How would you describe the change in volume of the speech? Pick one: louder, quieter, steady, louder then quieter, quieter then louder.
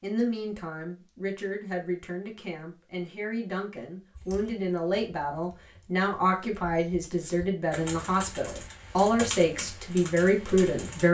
louder.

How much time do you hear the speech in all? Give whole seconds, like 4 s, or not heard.
11 s.